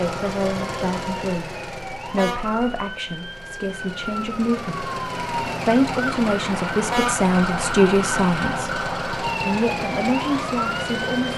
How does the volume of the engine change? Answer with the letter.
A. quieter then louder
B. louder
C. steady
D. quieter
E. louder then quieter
A.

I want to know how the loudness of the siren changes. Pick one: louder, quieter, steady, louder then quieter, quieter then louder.
louder.